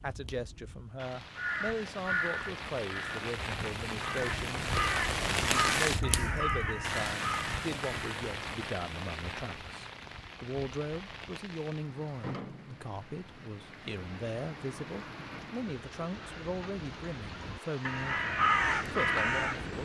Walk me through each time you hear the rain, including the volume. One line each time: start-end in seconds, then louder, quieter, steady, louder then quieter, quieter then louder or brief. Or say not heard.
0.0-19.8 louder then quieter.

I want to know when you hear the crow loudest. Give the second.
19 s.